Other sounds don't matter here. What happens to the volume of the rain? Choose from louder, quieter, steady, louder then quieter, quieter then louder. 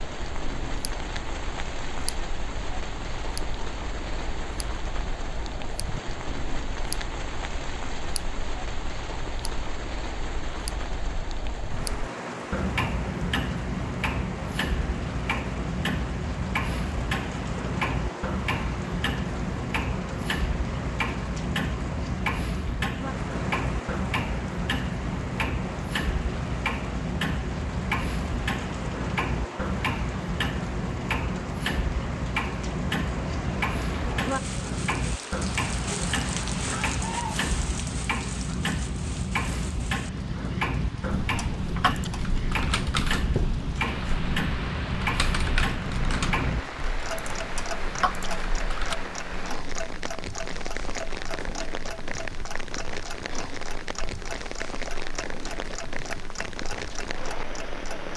steady.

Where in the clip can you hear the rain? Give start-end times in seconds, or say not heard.
0.0-58.1.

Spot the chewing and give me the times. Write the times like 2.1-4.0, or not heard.
not heard.